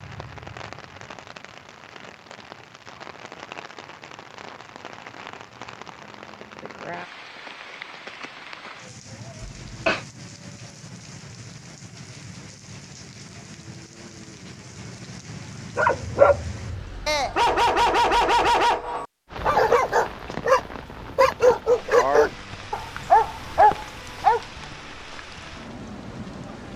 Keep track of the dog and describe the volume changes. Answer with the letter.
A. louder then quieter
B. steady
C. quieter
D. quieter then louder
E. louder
B.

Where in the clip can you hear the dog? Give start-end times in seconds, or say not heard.
15.8-24.4.